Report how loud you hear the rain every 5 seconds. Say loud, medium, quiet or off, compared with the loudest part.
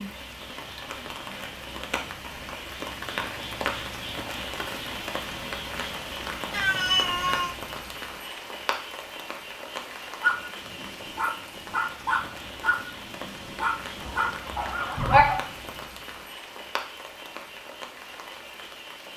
loud, loud, medium, medium.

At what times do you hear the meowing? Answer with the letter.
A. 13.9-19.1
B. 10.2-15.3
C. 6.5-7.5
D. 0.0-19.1
C.